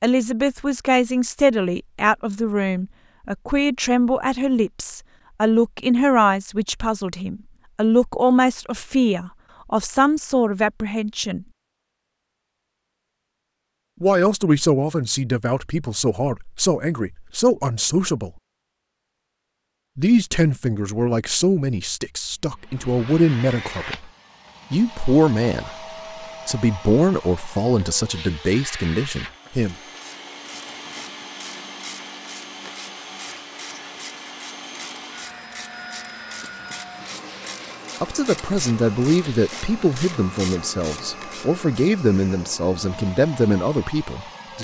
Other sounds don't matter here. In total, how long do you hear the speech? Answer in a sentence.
You can hear the speech for 31 seconds altogether.